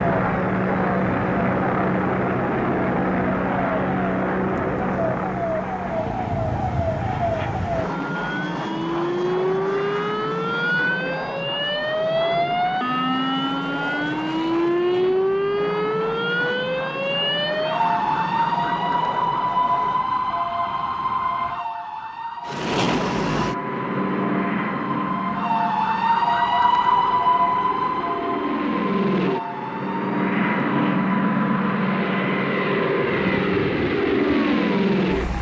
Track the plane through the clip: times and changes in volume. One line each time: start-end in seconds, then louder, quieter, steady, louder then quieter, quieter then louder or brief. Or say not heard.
0.0-20.1 quieter
22.4-35.3 quieter then louder.